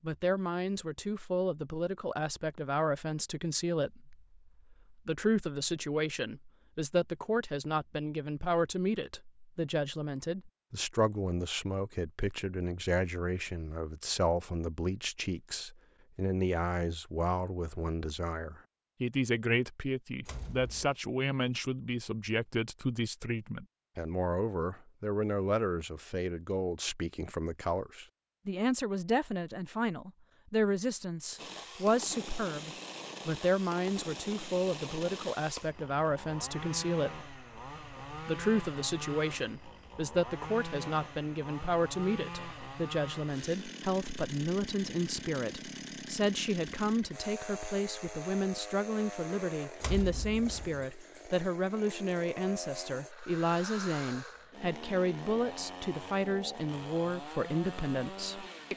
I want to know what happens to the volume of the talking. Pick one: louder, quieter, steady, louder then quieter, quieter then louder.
steady.